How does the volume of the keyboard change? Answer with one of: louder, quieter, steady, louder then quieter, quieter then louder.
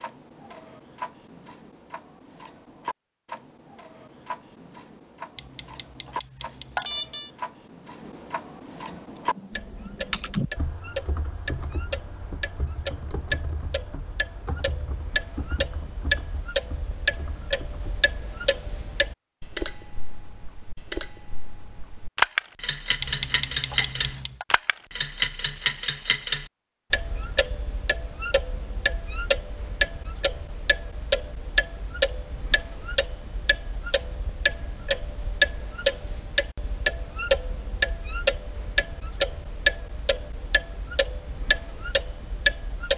quieter.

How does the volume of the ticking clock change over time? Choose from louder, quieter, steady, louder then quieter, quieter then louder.
louder.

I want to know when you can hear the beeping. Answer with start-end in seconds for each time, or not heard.
5.3-7.3, 23.0-24.4.